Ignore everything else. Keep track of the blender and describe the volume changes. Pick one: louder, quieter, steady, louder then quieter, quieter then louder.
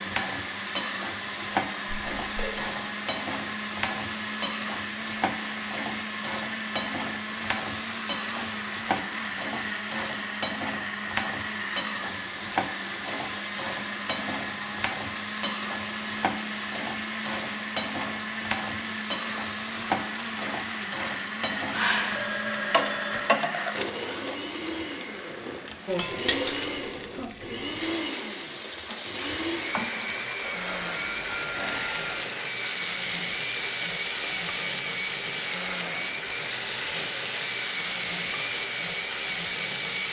steady.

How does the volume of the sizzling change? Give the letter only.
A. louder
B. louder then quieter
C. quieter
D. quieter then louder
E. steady
E.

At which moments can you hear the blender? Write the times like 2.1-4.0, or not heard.
0.0-40.0.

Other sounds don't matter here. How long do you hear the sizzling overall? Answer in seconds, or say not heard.
40 s.